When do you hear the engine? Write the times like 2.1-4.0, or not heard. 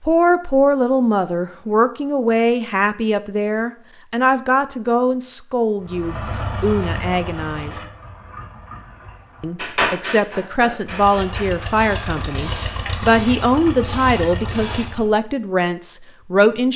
5.8-9.8, 10.8-15.2.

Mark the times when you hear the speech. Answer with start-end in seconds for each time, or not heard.
0.0-7.8, 9.4-16.7.